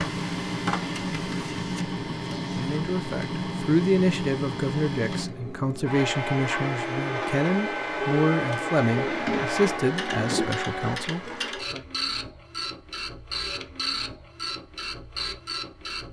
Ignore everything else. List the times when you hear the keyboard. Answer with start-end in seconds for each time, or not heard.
not heard.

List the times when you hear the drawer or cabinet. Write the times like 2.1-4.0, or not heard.
8.9-10.6.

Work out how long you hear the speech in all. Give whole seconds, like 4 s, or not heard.
9 s.